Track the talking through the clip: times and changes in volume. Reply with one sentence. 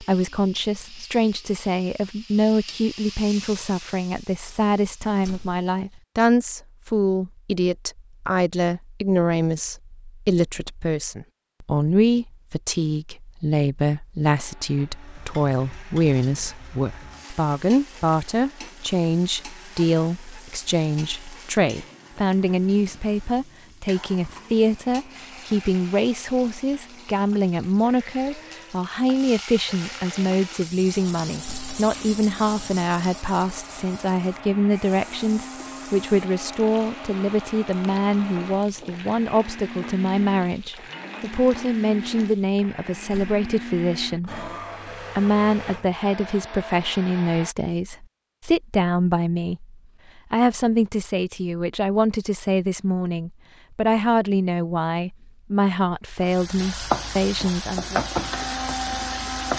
You can hear the talking from 0.0 to 58.0 s, at a steady volume.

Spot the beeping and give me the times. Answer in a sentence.
You can't hear the beeping here.